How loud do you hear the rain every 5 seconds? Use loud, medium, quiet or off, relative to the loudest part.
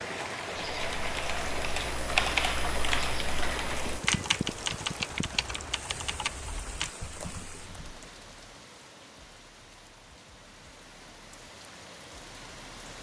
loud, medium, quiet.